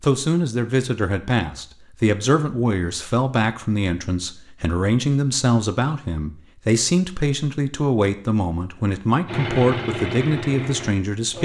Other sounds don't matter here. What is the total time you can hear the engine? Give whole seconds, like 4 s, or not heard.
2 s.